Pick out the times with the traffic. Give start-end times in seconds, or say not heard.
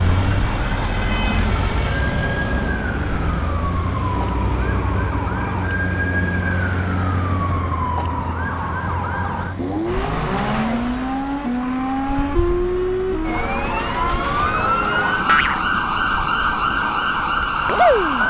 0.0-18.2.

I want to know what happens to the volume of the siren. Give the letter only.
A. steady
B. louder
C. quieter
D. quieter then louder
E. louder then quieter
B.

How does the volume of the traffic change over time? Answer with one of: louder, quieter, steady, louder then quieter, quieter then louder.
quieter.